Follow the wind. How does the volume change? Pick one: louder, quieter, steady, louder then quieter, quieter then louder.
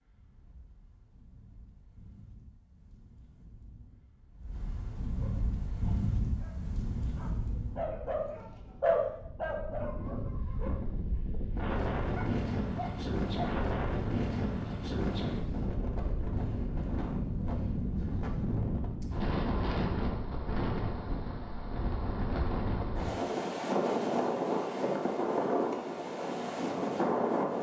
louder.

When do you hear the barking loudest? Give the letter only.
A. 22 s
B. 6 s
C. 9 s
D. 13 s
C.